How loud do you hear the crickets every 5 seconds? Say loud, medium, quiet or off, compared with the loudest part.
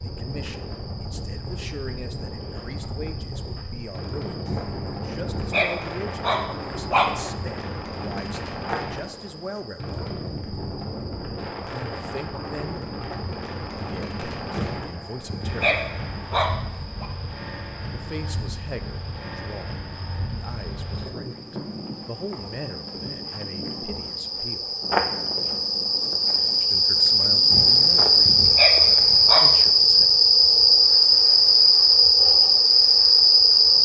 quiet, quiet, quiet, quiet, quiet, loud, loud.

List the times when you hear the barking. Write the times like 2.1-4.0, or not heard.
4.5-7.2, 14.5-17.1, 27.5-29.6.